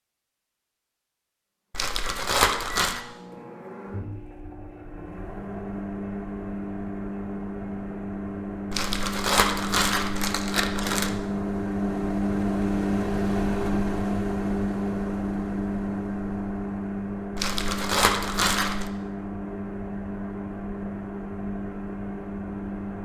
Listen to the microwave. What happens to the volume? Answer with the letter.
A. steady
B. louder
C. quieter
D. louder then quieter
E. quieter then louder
D.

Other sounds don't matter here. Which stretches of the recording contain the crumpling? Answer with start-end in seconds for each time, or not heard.
1.7-3.0, 8.7-11.2, 17.4-18.9.